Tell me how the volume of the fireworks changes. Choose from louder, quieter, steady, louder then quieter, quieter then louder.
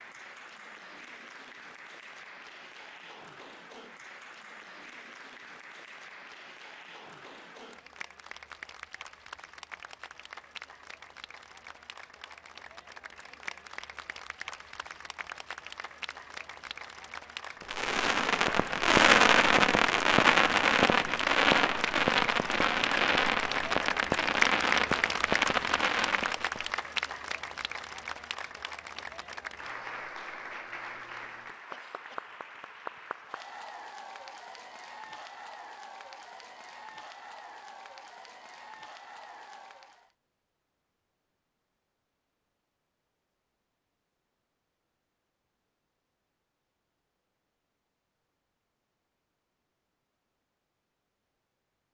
quieter.